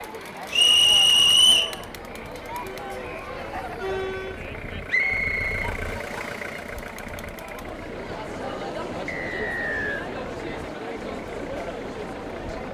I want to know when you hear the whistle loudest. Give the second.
1 s.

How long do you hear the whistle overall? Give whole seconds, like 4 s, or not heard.
4 s.